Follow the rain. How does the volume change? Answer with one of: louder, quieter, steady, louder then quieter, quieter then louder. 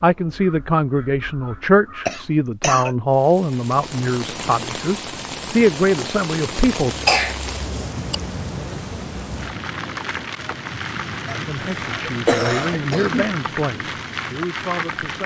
steady.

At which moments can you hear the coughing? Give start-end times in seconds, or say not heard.
2.0-3.0, 6.6-8.2, 11.2-13.2.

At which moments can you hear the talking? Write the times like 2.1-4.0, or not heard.
0.0-7.0, 11.4-15.2.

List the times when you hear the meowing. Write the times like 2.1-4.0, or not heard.
not heard.